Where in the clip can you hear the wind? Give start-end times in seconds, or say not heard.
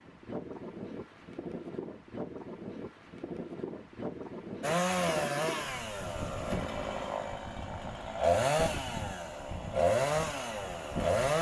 0.0-11.3.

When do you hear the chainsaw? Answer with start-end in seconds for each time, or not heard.
4.6-11.3.